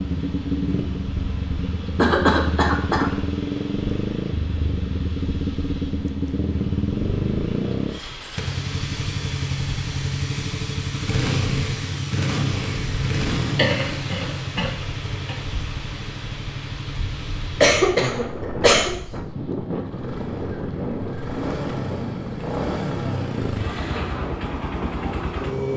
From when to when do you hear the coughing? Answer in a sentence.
You can hear the coughing from 1.9 to 3.1 s, from 13.5 to 15.3 s and from 17.6 to 18.9 s.